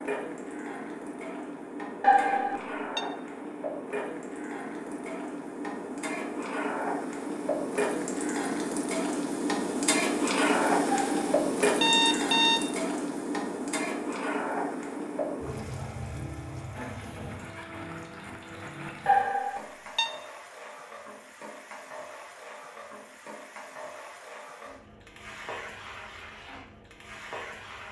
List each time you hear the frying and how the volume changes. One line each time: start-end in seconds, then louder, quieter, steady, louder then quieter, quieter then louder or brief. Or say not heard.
0.0-27.8 louder then quieter.